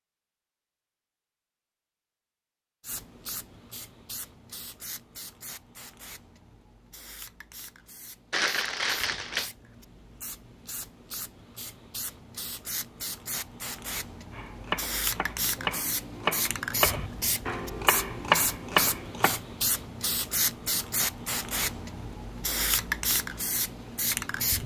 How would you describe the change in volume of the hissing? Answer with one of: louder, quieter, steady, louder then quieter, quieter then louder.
louder.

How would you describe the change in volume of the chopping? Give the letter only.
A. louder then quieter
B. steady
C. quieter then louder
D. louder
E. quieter
D.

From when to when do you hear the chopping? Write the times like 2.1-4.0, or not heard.
14.3-19.4.